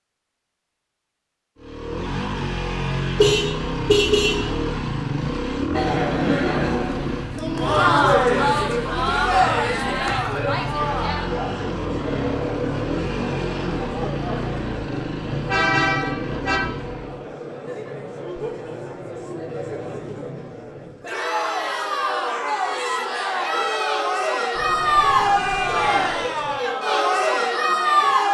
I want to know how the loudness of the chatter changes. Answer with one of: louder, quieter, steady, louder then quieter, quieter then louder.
quieter then louder.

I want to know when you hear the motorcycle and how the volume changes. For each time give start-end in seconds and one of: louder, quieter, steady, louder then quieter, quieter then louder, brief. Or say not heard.
1.6-17.4 steady.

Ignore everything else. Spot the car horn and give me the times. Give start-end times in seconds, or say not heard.
3.1-4.5, 15.4-16.6, 24.6-26.6.